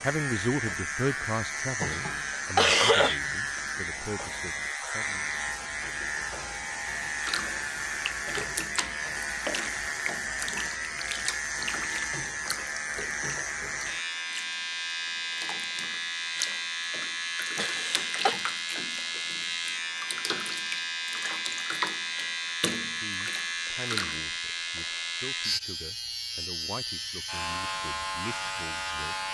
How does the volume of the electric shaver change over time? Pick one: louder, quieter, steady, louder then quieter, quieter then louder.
steady.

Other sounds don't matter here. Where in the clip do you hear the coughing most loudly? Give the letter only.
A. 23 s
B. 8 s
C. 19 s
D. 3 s
D.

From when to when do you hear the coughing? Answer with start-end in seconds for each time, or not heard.
1.9-3.6, 17.6-18.4.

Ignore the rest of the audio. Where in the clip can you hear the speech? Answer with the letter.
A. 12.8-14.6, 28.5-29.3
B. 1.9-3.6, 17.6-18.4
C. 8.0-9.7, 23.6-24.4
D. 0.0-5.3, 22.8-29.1
D.